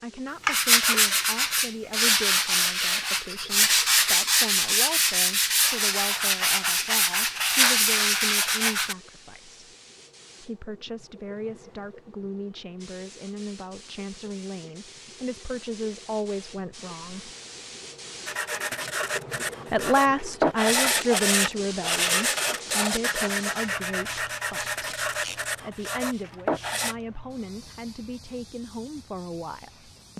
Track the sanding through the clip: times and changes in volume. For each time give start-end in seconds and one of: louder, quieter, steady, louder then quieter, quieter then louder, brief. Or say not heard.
0.2-8.9 steady
18.2-26.9 louder then quieter.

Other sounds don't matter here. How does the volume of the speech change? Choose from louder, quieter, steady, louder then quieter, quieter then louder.
louder then quieter.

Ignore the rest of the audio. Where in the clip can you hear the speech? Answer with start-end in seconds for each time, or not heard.
0.0-9.6, 10.4-17.3, 19.7-30.1.